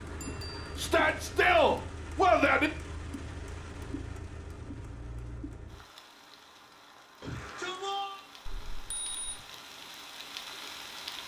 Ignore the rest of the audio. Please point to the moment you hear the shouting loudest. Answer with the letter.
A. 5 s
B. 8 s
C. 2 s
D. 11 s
C.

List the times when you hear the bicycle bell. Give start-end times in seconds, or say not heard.
0.2-0.7, 8.4-9.4.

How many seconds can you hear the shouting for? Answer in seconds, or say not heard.
3 s.